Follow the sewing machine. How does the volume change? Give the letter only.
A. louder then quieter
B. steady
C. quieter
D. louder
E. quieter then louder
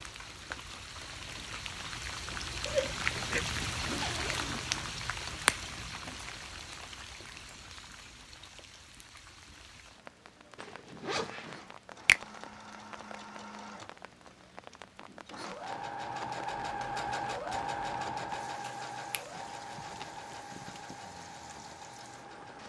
A.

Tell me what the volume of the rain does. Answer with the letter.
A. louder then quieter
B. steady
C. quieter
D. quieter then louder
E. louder
C.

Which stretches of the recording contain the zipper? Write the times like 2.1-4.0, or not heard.
2.6-4.6, 10.6-11.8, 19.3-21.0.